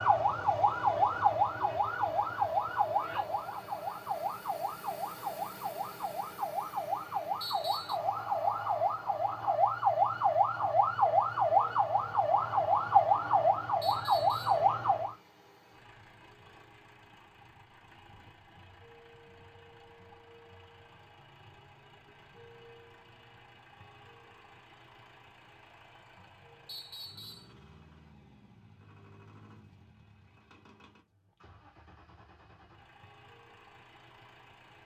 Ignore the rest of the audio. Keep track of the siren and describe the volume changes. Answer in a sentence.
The loudness of the siren goes down, then up.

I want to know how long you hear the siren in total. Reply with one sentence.
The siren can be heard for 15 seconds in total.